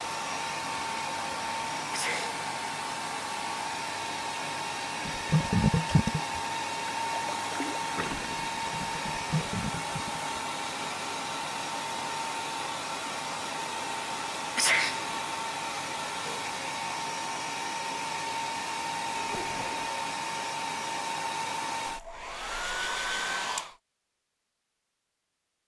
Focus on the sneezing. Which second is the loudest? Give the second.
15 s.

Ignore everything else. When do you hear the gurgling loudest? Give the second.
6 s.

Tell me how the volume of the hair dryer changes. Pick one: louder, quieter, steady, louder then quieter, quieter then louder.
steady.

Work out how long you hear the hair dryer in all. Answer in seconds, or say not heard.
24 s.